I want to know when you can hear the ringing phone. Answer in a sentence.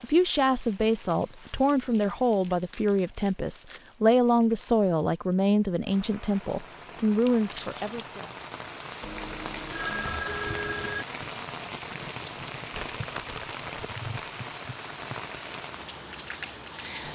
The ringing phone can be heard from 9.0 to 11.1 s.